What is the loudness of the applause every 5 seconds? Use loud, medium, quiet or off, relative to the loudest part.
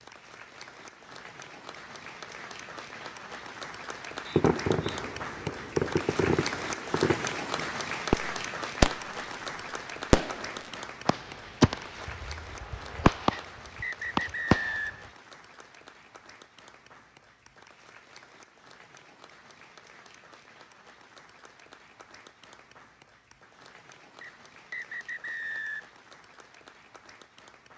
medium, loud, medium, quiet, quiet, quiet.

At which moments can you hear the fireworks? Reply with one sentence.
You can hear the fireworks from 4.3 to 8.9 s and from 10.1 to 14.8 s.